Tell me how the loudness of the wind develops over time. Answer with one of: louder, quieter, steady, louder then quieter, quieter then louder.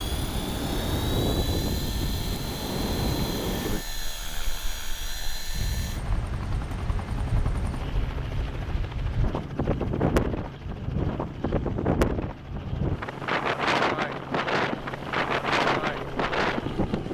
quieter then louder.